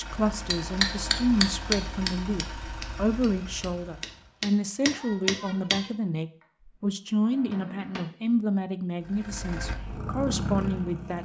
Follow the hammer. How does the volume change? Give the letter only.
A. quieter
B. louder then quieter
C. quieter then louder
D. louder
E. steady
C.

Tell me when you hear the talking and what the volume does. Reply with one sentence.
The talking can be heard from 0.0 to 11.2 s, at a steady volume.